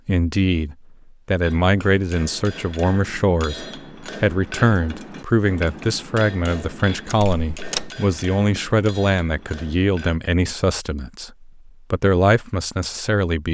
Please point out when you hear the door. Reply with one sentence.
The door can be heard from 7.0 to 8.0 s.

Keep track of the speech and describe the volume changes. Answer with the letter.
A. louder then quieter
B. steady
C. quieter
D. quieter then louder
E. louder
B.